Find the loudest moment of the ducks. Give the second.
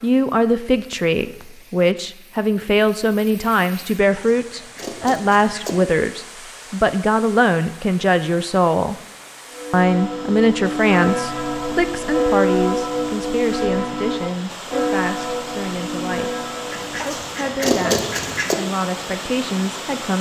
18 s.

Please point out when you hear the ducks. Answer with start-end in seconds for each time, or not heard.
4.1-5.8, 16.7-18.6.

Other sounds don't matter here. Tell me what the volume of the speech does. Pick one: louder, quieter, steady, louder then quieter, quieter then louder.
quieter.